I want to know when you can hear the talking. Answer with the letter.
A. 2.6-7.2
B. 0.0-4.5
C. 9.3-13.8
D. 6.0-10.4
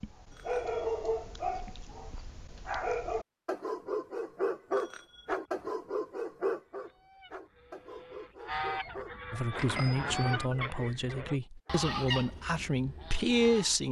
C.